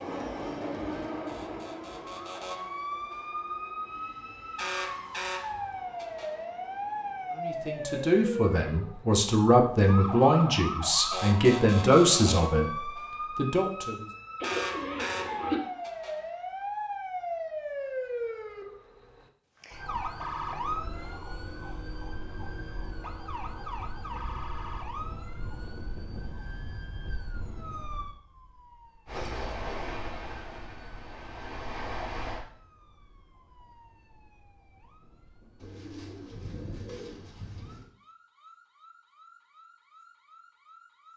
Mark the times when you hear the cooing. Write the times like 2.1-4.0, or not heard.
14.4-15.6, 35.5-37.9.